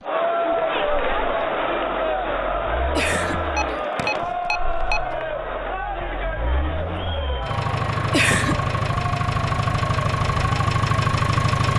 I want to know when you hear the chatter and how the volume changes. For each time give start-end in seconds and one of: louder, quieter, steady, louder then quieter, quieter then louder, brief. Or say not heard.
0.0-11.5 quieter.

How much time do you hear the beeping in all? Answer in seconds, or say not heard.
2 s.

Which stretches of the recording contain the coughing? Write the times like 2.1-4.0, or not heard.
3.0-4.2, 8.1-8.6.